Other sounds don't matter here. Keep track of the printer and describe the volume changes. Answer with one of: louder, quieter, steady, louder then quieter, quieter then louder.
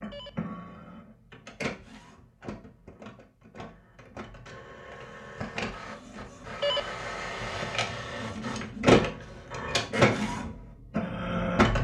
quieter then louder.